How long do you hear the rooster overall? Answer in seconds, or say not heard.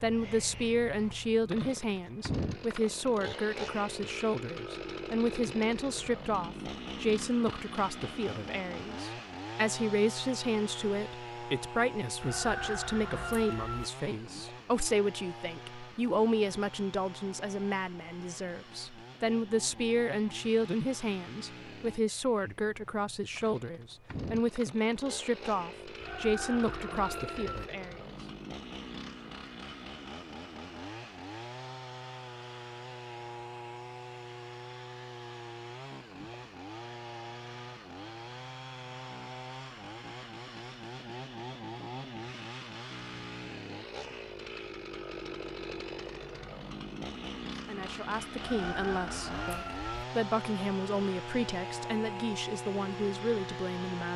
5 s.